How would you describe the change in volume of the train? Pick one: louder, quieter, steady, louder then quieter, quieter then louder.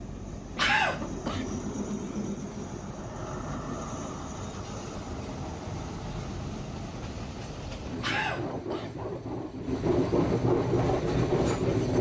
louder.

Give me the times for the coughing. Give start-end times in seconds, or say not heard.
0.6-1.5, 8.0-8.9.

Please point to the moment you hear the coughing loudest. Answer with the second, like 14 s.
1 s.